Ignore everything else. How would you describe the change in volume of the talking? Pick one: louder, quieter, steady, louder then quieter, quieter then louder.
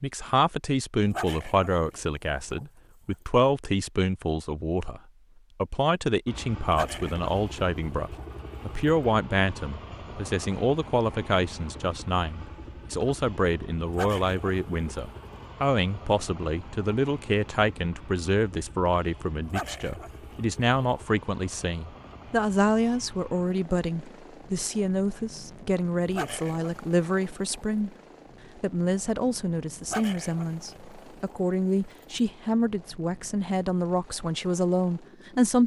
steady.